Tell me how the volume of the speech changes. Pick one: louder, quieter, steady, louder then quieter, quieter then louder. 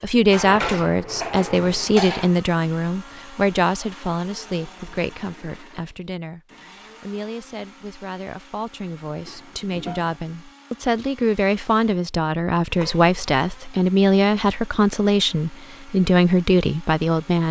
quieter then louder.